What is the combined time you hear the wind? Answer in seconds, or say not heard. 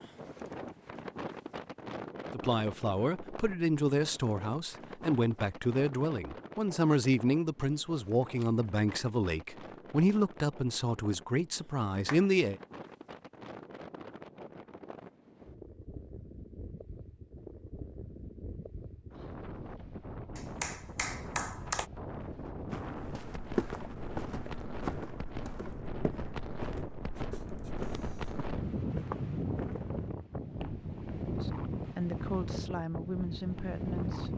34 s.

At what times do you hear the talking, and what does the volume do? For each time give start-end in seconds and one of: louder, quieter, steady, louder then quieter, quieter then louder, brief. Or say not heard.
2.3-12.6 steady
31.4-34.3 brief.